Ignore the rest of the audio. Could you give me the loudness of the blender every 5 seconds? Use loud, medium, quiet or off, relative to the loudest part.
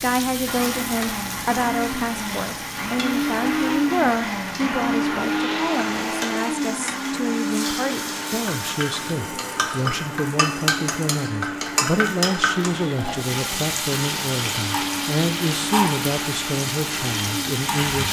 loud, loud, medium, medium.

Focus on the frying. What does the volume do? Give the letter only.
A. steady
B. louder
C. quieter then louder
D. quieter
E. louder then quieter
B.